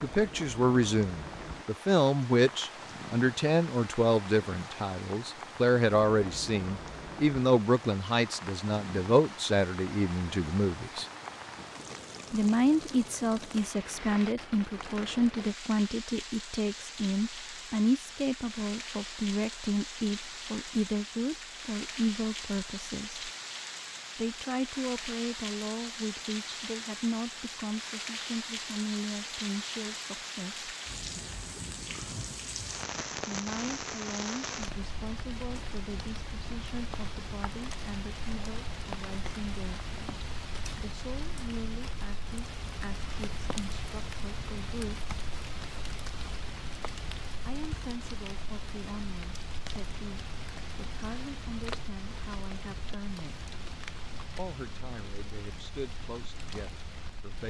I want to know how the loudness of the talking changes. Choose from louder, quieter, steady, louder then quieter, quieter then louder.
quieter.